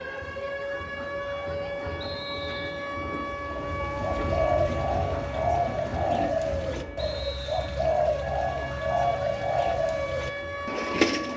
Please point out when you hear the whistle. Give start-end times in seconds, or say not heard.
2.0-2.8, 7.0-7.7.